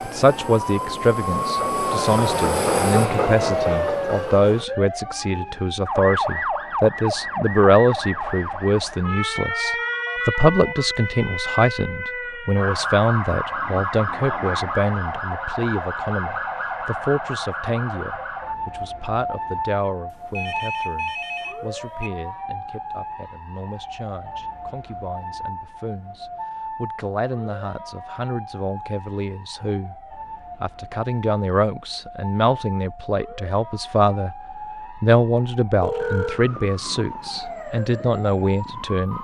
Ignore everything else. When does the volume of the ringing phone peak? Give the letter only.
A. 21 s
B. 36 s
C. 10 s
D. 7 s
B.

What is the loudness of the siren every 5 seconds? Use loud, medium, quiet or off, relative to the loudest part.
loud, loud, loud, loud, medium, medium, medium, medium.